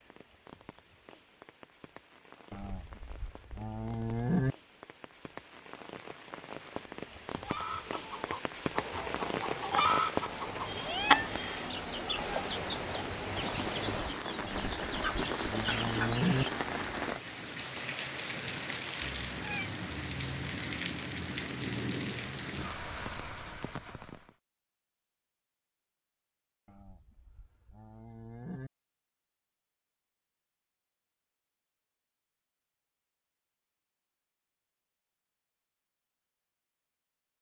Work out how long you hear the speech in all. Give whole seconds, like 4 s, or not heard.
not heard.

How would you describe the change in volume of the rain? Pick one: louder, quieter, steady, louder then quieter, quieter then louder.
louder.